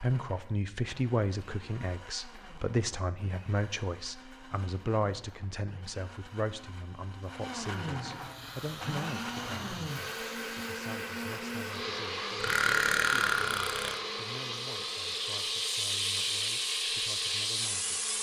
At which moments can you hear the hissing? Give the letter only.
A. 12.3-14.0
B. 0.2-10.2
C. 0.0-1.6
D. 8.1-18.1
D.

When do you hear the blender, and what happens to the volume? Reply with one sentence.
The blender can be heard from 0.0 to 18.1 s, getting louder then quieter.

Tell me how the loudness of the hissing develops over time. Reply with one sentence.
The loudness of the hissing goes up.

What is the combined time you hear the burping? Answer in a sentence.
You can hear the burping for 2 seconds altogether.